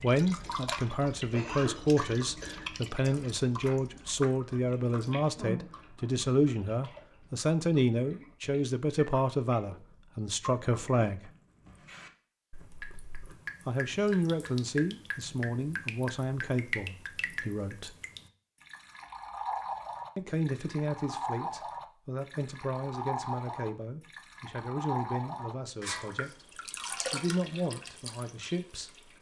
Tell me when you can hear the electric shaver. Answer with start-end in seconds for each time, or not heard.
not heard.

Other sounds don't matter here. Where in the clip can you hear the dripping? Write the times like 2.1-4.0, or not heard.
0.0-29.1.